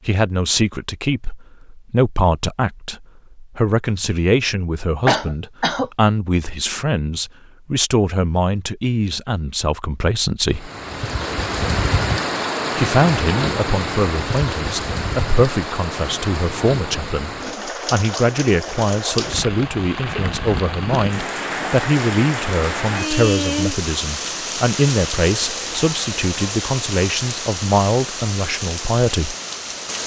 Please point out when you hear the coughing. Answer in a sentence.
The coughing can be heard from 5.0 to 5.9 s.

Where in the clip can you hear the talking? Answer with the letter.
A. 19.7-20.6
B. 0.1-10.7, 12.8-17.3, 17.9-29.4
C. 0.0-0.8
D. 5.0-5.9
B.